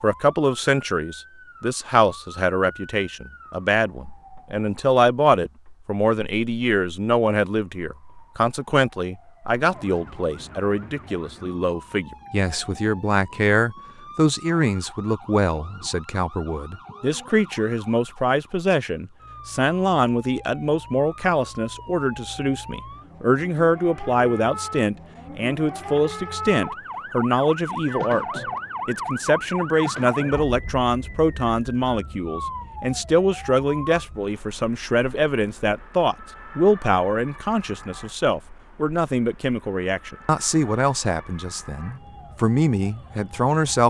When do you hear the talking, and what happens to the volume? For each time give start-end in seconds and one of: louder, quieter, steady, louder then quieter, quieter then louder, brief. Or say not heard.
0.0-43.8 steady.